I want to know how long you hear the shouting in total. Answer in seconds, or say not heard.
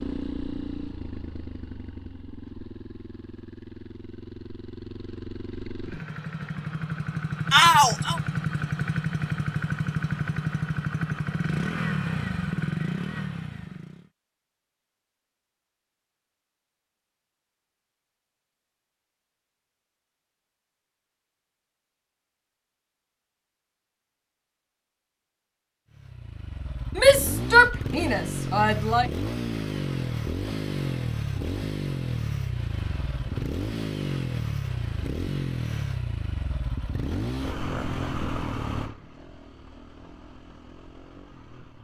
3 s.